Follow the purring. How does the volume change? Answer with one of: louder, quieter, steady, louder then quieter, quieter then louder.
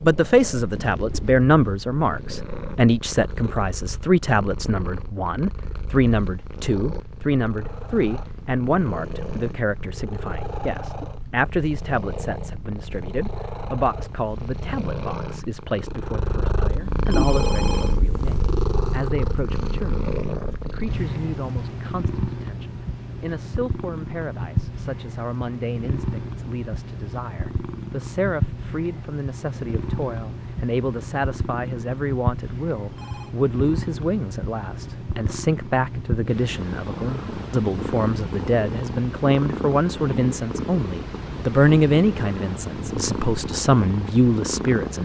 louder.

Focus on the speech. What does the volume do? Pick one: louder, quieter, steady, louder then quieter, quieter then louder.
quieter then louder.